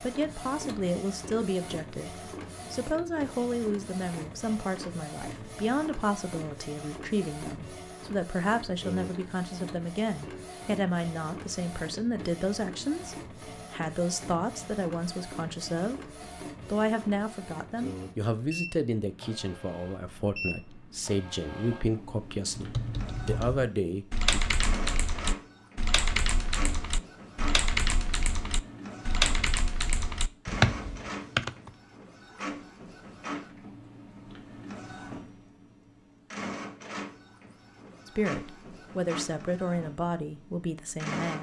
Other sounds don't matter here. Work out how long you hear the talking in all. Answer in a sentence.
You can hear the talking for 27 seconds altogether.